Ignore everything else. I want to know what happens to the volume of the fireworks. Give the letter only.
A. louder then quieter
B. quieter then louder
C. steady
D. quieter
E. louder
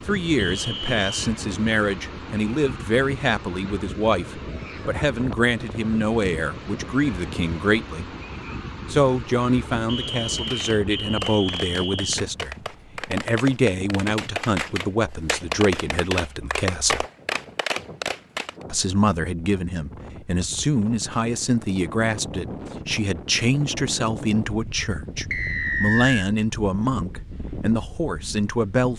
E.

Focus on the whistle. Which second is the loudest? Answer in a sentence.
The loudest moment of the whistle is at 26 seconds.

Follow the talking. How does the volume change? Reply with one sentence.
The loudness of the talking stays about the same.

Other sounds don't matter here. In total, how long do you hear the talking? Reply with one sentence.
The talking can be heard for 26 seconds in total.